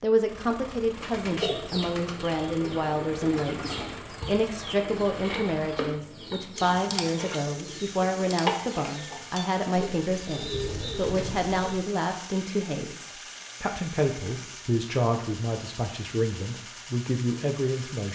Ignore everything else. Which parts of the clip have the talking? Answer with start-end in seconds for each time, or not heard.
0.0-18.0.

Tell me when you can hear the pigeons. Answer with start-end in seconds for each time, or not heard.
0.9-11.8.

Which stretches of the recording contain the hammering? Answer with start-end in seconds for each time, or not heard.
not heard.